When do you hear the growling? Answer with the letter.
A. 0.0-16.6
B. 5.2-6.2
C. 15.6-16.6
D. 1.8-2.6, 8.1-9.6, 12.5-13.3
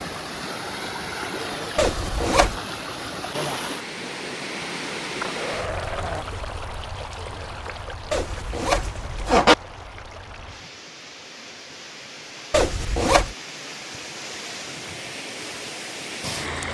B.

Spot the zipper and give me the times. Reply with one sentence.
The zipper can be heard from 1.8 to 2.6 s, from 8.1 to 9.6 s and from 12.5 to 13.3 s.